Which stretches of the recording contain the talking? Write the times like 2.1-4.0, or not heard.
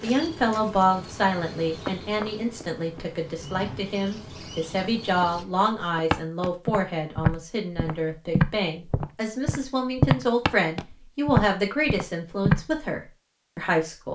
0.0-14.1.